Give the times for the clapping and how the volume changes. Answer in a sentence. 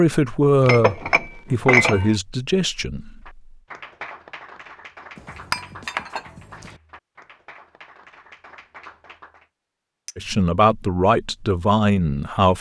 You can hear the clapping from 3.2 to 9.4 s, getting quieter.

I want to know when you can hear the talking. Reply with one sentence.
You can hear the talking from 0.0 to 3.4 s and from 10.2 to 12.5 s.